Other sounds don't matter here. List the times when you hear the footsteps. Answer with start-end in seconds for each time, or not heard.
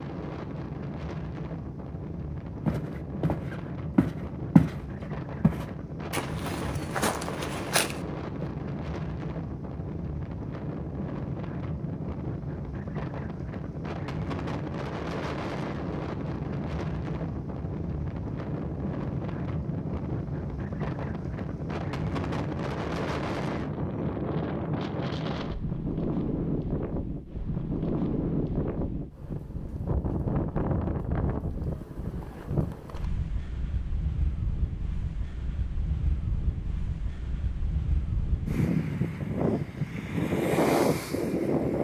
2.6-4.8, 5.4-8.4.